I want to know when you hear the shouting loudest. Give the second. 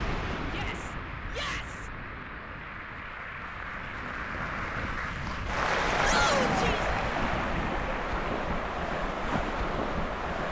6 s.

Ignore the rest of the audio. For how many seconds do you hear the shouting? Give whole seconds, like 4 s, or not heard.
2 s.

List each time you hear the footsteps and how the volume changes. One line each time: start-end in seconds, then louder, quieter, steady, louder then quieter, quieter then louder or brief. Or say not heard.
not heard.